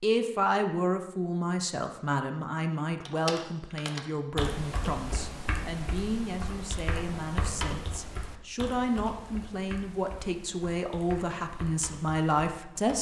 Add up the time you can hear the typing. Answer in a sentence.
The typing can be heard for 10 seconds in total.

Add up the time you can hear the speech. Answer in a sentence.
The speech can be heard for 13 seconds in total.